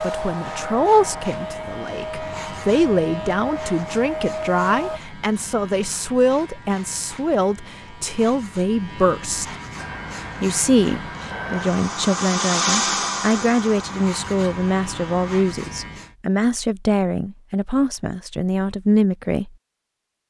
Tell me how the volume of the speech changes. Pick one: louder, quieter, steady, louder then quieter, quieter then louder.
steady.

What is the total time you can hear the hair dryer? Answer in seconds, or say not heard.
11 s.